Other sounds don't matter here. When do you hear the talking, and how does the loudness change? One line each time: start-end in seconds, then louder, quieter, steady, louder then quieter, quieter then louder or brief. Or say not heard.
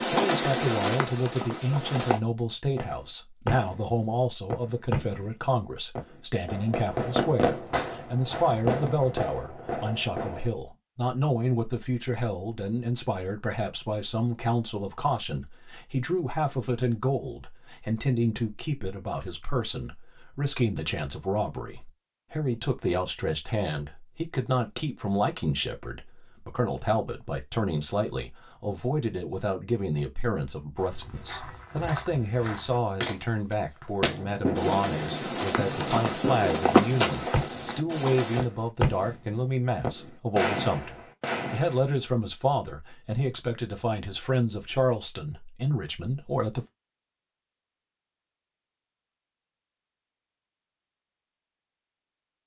0.1-46.6 steady.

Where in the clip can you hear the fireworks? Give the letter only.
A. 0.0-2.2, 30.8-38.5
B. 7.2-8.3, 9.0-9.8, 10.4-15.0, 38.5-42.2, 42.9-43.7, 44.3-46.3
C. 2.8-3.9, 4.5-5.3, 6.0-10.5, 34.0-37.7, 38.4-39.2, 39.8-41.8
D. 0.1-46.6
C.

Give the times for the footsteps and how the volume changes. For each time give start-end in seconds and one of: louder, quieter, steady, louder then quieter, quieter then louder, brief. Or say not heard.
0.0-2.2 brief
30.8-38.5 louder.